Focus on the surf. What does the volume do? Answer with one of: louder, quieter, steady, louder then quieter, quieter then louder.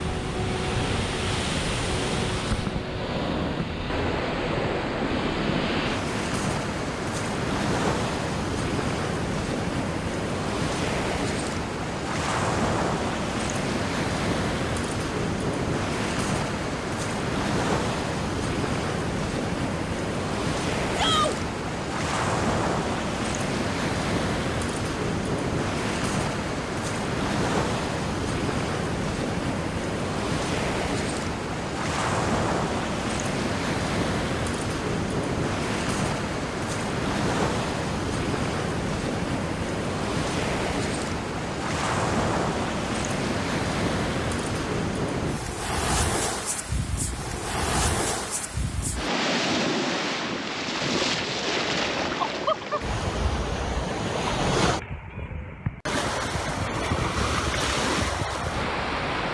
steady.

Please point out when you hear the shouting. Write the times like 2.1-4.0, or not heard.
20.9-21.4.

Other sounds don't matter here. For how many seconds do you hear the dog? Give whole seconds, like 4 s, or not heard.
not heard.